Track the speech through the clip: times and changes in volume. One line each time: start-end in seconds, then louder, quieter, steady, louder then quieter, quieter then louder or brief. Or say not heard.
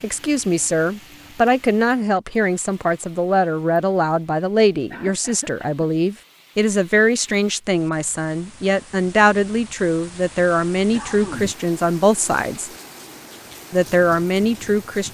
0.0-12.7 steady
13.7-15.0 brief.